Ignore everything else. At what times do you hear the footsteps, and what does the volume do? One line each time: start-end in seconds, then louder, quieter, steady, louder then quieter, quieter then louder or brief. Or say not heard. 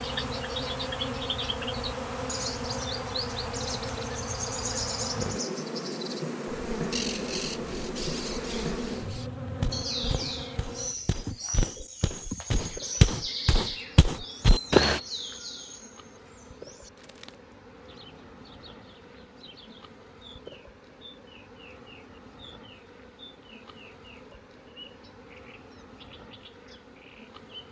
9.6-15.0 louder.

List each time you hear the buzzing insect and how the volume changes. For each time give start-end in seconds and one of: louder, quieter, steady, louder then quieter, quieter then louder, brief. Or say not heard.
0.0-27.6 quieter.